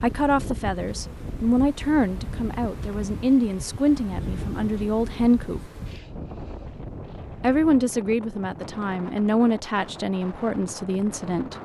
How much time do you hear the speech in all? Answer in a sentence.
You can hear the speech for 10 seconds altogether.